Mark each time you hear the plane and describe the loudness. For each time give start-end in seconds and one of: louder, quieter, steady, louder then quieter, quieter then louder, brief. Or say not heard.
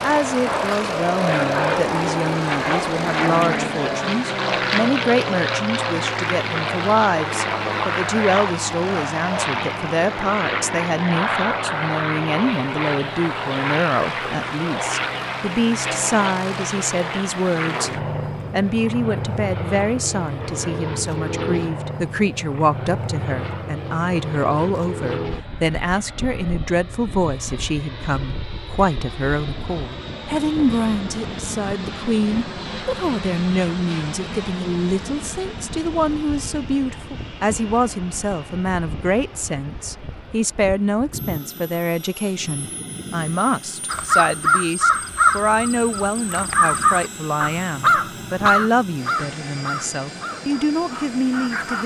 0.0-51.8 quieter.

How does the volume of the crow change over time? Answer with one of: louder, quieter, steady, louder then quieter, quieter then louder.
quieter.